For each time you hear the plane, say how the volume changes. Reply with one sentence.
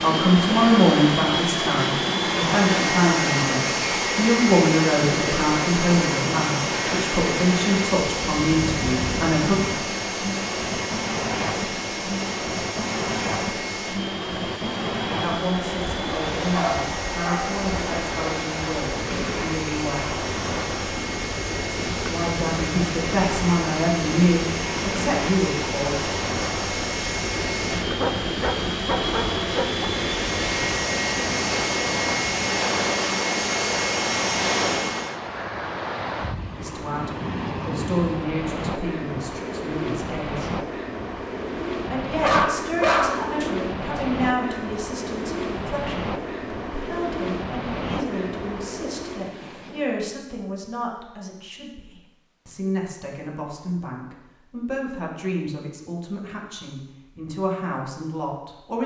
The plane can be heard from 0.0 to 35.1 s, getting quieter then louder.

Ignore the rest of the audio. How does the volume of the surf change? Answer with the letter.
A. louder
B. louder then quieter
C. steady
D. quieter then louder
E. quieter
C.